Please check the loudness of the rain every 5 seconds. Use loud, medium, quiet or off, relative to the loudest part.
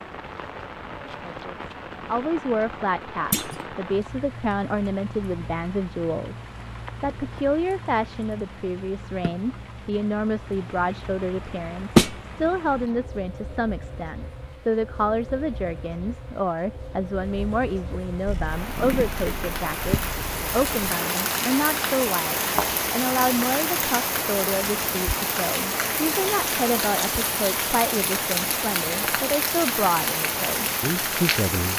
medium, quiet, quiet, medium, loud, loud, loud.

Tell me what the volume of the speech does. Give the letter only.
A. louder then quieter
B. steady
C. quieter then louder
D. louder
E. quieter
B.